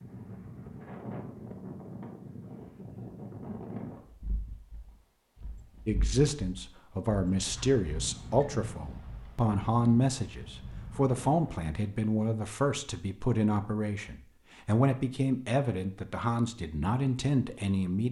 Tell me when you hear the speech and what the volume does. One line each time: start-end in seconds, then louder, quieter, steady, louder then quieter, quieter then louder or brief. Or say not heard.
5.8-18.0 steady.